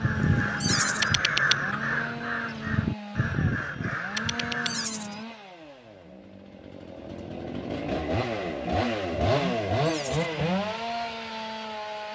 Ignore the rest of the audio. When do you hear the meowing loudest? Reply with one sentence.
The loudest moment of the meowing is at 1 second.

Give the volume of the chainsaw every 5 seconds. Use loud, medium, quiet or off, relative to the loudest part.
medium, loud, loud.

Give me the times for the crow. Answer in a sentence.
The crow can be heard from 0.0 to 4.9 s.